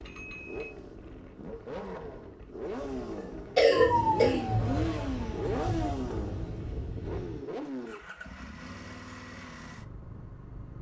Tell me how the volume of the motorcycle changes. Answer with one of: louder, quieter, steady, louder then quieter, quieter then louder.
louder then quieter.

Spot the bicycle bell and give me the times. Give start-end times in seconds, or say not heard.
0.1-0.8.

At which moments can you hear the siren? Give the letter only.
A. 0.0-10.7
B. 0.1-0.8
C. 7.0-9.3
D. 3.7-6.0
D.